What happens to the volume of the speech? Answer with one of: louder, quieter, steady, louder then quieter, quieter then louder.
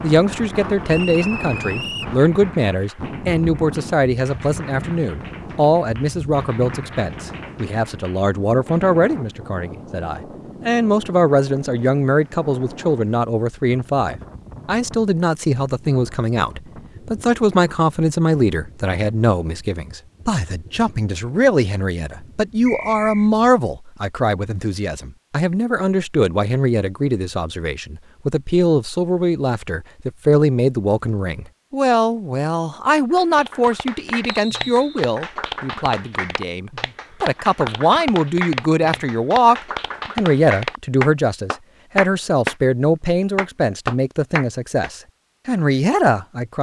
steady.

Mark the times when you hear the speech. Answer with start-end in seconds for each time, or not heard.
0.0-46.5.